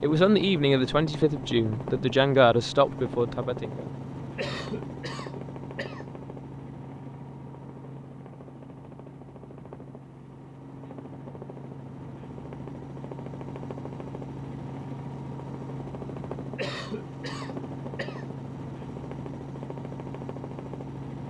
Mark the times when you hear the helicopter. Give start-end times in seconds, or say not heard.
0.0-21.2.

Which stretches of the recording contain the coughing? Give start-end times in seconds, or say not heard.
4.3-6.0, 16.6-18.2.